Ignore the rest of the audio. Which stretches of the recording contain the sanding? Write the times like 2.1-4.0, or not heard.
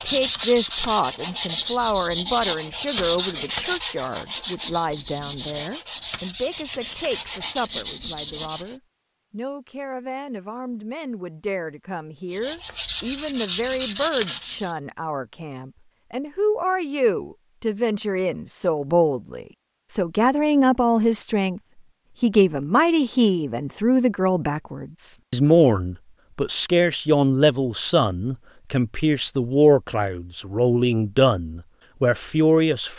0.0-8.8, 12.3-14.8.